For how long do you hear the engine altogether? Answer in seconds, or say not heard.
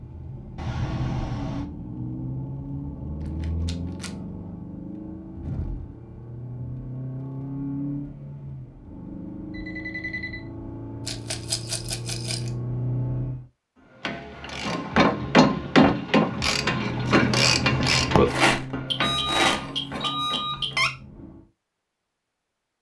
18 s.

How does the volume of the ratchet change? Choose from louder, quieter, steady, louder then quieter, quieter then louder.
quieter.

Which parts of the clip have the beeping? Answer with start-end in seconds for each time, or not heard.
0.6-1.6, 9.5-10.4, 18.9-20.9.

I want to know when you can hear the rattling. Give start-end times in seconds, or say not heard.
3.4-4.1, 11.1-12.5, 18.2-20.1.